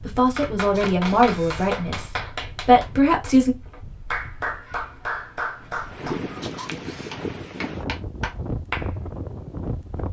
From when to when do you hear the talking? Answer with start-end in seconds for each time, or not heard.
0.1-3.5.